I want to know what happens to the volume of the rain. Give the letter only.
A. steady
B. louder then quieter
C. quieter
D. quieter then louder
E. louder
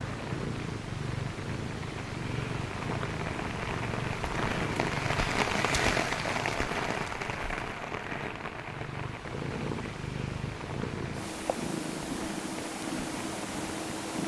B.